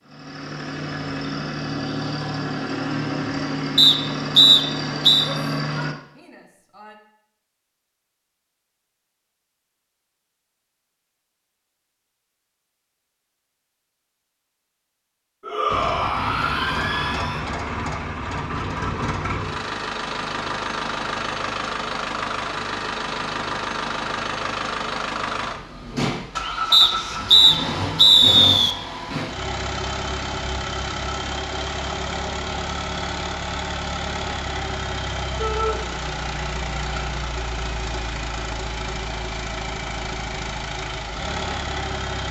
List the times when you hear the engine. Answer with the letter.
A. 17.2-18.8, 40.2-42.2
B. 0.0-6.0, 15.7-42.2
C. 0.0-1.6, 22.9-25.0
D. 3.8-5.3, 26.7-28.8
B.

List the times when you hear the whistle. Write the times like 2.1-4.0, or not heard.
3.8-5.3, 26.7-28.8.